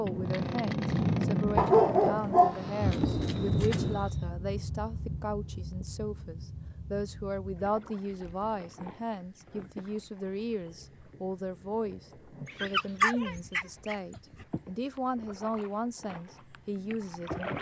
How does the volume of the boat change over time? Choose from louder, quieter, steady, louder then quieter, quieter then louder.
quieter.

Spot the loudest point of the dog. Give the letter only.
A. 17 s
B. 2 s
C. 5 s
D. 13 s
B.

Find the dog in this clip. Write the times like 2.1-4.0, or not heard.
1.6-3.8, 12.4-14.4.